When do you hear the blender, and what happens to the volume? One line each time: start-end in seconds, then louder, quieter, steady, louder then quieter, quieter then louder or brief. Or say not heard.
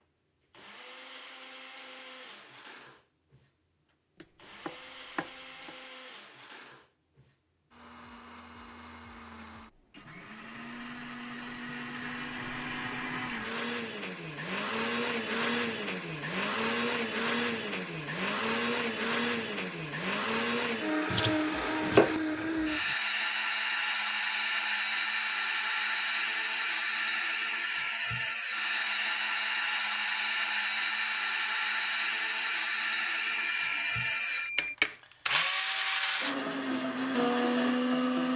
0.0-38.3 louder.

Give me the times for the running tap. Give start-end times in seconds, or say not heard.
not heard.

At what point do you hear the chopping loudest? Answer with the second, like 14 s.
22 s.